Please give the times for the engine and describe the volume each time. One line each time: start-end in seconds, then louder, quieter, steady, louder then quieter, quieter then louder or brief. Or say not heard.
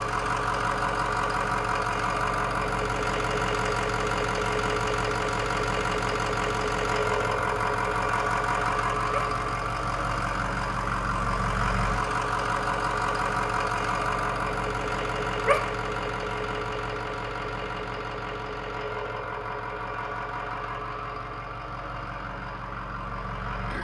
0.0-23.7 quieter.